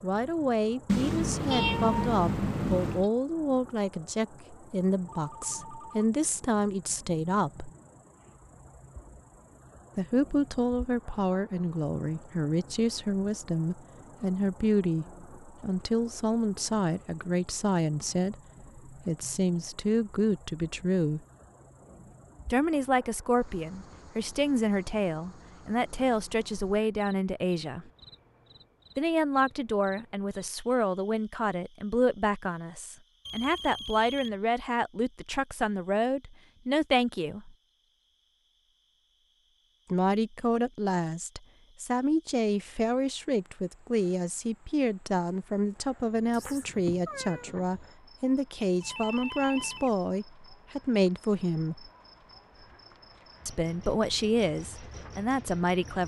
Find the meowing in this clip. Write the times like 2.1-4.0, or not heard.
0.8-3.1, 46.3-47.5.